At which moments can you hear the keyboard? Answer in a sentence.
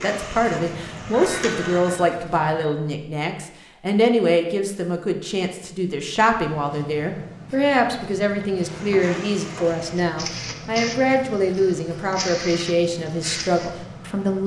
The keyboard can't be heard in this clip.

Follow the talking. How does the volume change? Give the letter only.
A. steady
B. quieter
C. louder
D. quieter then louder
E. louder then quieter
A.